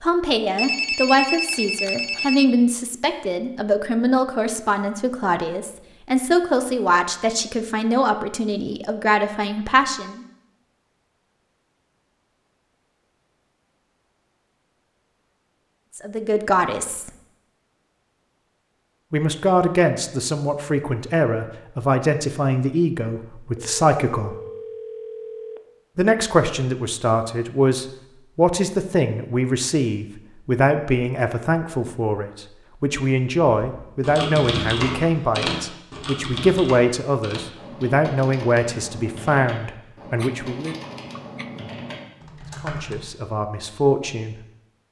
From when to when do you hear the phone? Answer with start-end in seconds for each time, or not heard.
0.6-2.5, 23.6-25.6, 40.1-41.5.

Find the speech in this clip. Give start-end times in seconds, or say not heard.
0.0-10.2, 15.9-17.1, 19.1-24.4, 25.9-40.8, 42.5-44.4.